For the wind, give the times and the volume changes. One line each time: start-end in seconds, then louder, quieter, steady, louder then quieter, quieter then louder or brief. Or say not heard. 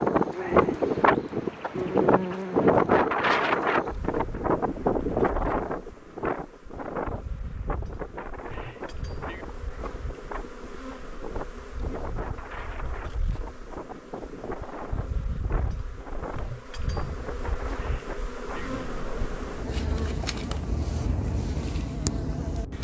0.0-22.7 quieter.